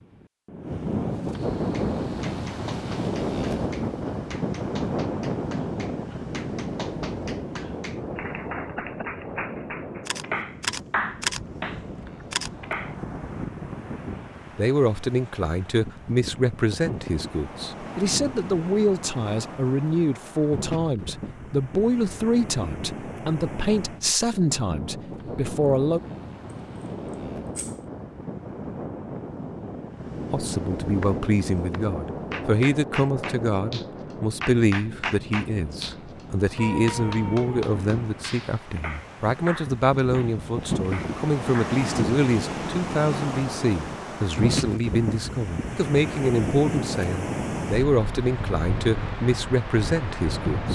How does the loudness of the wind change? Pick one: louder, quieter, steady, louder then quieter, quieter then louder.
quieter then louder.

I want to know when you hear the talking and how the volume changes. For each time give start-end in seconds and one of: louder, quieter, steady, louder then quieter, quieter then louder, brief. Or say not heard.
14.6-26.0 steady
30.3-50.6 steady.